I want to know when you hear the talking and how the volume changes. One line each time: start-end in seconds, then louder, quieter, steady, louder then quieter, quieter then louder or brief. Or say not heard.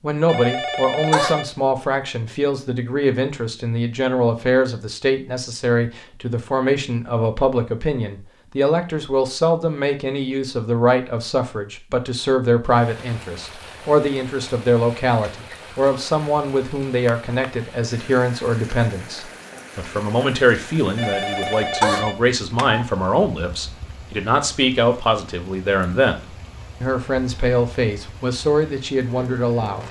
0.0-29.8 steady.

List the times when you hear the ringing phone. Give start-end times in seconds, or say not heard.
0.2-1.5, 20.9-22.9.